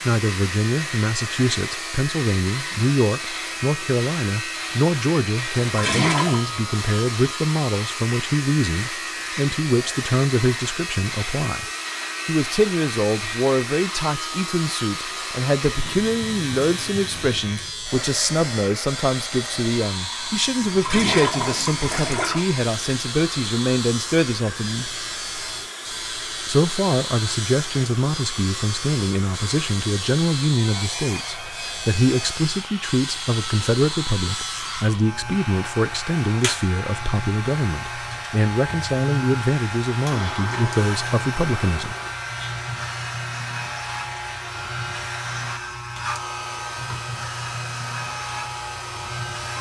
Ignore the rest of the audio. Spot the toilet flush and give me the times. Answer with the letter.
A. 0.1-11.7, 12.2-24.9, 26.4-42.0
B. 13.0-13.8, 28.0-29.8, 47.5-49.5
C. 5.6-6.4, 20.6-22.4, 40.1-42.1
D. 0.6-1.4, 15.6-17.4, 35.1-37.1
C.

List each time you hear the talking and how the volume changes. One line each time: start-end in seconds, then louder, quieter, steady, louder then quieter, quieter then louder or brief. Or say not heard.
0.1-11.7 steady
12.2-24.9 steady
26.4-42.0 steady.